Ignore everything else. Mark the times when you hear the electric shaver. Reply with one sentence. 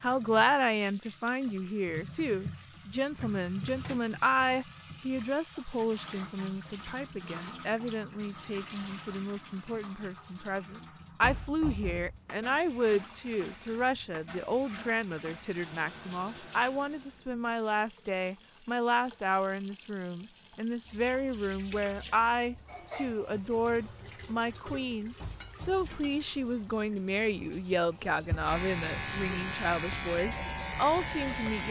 You can hear the electric shaver from 28.4 to 31.6 s.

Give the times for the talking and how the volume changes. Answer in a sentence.
You can hear the talking from 0.0 to 31.6 s, at a steady volume.